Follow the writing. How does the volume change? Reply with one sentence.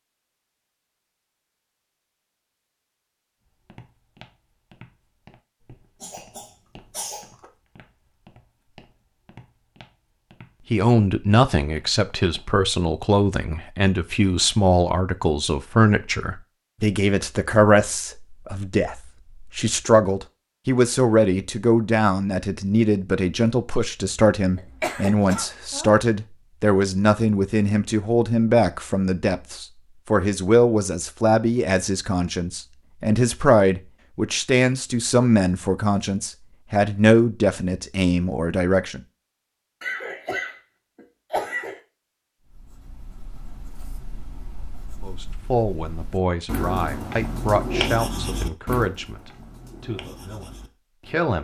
The volume of the writing goes up, then down.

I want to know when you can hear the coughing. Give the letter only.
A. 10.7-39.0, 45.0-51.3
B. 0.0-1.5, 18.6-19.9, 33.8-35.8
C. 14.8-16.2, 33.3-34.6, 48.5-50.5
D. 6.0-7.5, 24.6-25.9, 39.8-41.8
D.